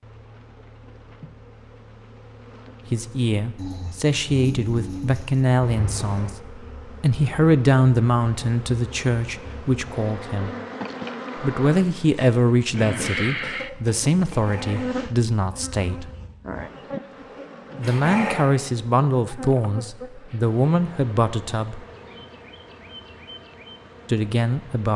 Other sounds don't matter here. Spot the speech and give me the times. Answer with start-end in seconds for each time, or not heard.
2.9-10.6, 11.3-16.1, 17.8-21.9, 24.1-24.9.